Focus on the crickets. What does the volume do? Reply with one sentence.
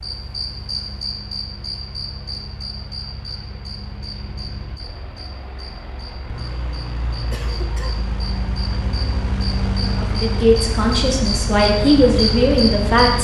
The loudness of the crickets goes down, then up.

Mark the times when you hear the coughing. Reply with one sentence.
The coughing can be heard from 7.3 to 8.1 s.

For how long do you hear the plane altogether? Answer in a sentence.
The plane can be heard for 13 seconds in total.